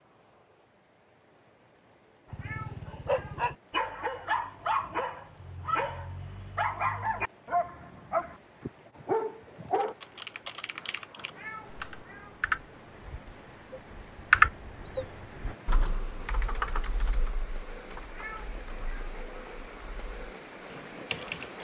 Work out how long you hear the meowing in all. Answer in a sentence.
The meowing can be heard for 3 seconds in total.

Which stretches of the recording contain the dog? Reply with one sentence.
The dog can be heard from 2.3 to 9.9 s.